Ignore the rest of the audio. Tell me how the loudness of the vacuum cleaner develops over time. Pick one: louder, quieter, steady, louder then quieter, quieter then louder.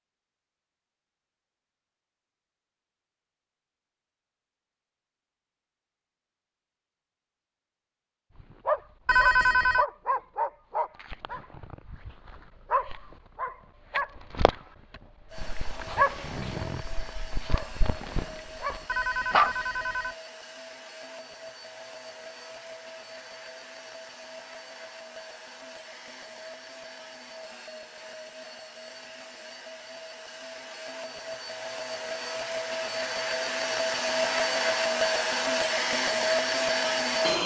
louder.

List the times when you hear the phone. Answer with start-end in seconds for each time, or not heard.
9.1-9.8, 18.9-20.1.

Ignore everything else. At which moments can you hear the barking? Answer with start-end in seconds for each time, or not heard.
8.4-19.5.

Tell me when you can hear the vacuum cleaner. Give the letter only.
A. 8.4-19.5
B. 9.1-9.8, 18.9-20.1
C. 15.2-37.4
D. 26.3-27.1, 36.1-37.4
C.